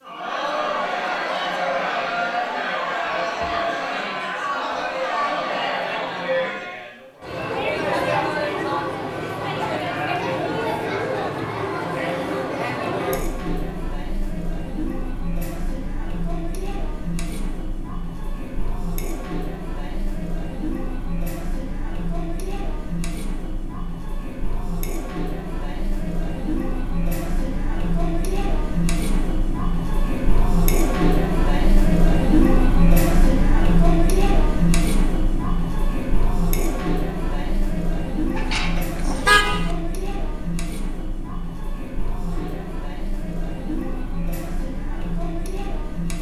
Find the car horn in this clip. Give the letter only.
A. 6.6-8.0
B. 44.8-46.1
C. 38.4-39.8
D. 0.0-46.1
C.